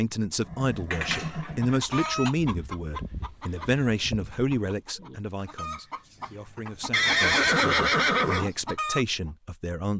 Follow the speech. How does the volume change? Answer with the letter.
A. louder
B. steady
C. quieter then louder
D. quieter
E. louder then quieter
C.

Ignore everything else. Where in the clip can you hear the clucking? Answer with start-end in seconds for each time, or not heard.
1.4-9.3.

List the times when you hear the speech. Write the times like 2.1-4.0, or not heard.
0.0-9.9.